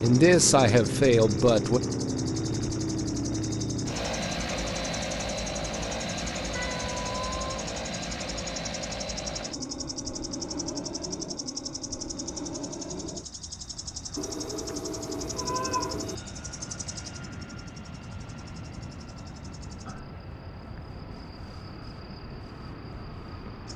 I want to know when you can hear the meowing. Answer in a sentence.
The meowing can be heard from 6.5 to 7.5 s and from 14.2 to 16.1 s.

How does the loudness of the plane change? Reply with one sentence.
The volume of the plane goes down.